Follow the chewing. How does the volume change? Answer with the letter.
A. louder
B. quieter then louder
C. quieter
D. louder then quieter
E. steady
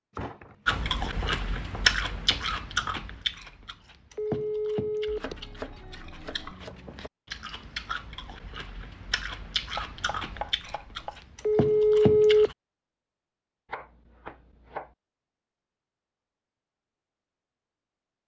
B.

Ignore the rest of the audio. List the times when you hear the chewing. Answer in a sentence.
You can hear the chewing from 0.7 to 12.6 s.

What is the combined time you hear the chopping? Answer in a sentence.
You can hear the chopping for 7 seconds altogether.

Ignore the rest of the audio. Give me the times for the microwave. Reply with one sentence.
You can't hear the microwave here.